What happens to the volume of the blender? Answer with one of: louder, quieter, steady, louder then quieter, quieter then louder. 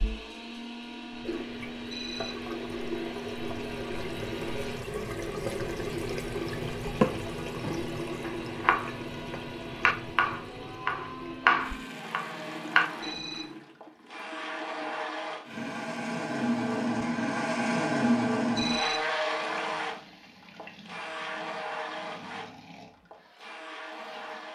louder then quieter.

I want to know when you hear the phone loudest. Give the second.
19 s.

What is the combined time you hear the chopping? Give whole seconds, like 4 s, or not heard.
6 s.